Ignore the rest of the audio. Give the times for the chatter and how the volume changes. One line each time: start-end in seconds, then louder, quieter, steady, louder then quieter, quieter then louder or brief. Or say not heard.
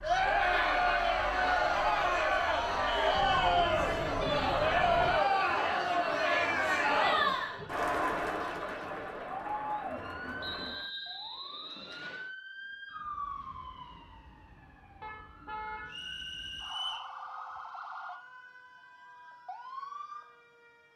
0.0-10.9 quieter.